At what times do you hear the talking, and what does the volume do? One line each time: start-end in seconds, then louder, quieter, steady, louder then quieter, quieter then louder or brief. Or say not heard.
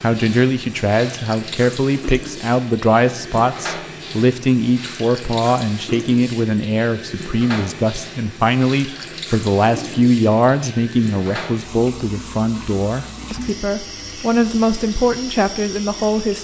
0.0-16.3 steady.